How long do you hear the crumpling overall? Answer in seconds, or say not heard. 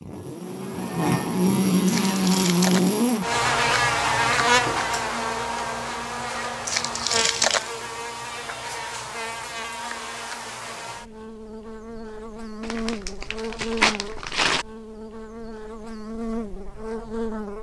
4 s.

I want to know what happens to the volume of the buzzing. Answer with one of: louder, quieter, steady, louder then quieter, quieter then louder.
quieter.